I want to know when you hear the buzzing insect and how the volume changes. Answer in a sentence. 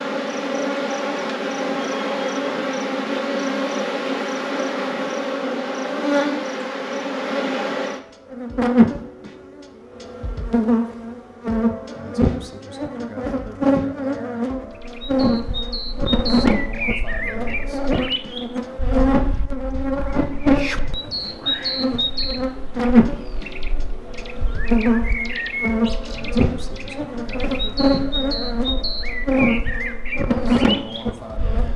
You can hear the buzzing insect from 0.0 to 31.7 s, at a steady volume.